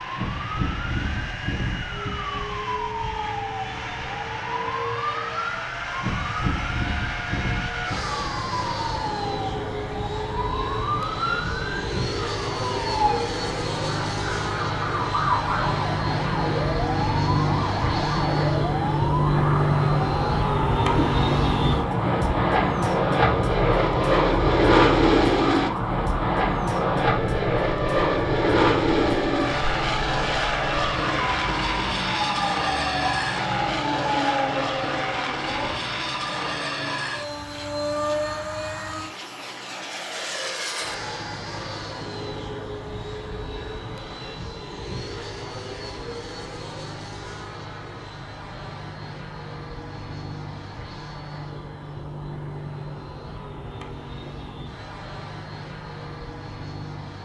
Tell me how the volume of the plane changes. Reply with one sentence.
The volume of the plane goes up, then down.